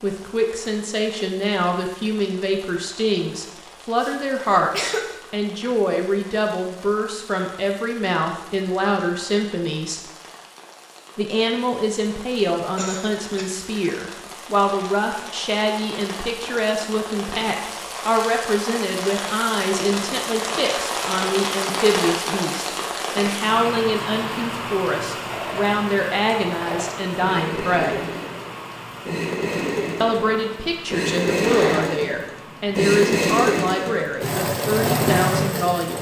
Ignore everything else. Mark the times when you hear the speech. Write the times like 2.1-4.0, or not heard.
0.0-10.0, 11.2-28.0, 30.0-35.9.